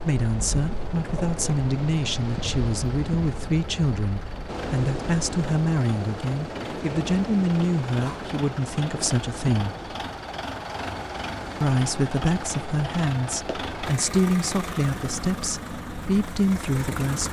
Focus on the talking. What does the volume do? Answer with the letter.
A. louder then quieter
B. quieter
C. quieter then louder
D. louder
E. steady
E.